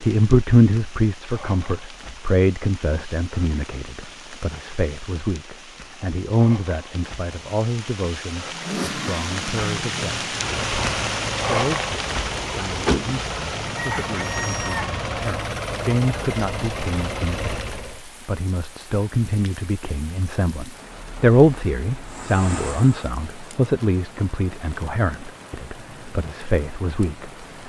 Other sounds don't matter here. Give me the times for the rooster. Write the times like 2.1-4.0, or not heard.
13.8-14.9.